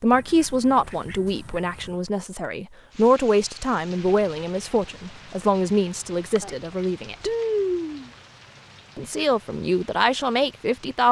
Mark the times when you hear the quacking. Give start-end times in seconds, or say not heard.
0.1-2.0, 6.4-8.1.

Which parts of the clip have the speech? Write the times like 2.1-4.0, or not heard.
0.0-7.3, 8.9-11.0.